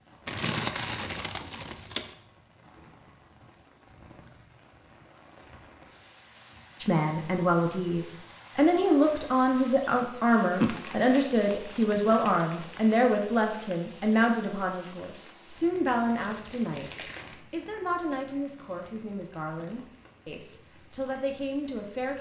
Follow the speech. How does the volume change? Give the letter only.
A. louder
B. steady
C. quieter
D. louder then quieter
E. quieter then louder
C.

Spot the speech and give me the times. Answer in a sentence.
You can hear the speech from 6.8 to 22.1 s.